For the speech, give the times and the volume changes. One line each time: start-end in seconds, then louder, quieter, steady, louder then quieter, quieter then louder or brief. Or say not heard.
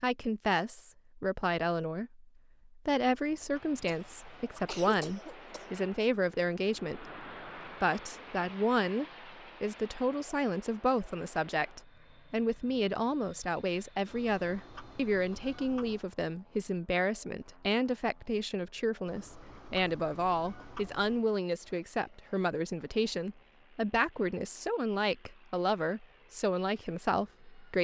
0.0-27.7 steady.